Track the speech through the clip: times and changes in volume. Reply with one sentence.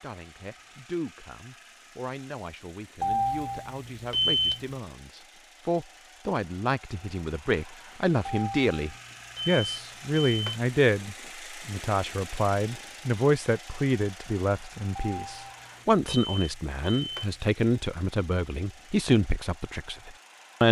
The speech can be heard from 0.0 to 20.6 s, getting louder.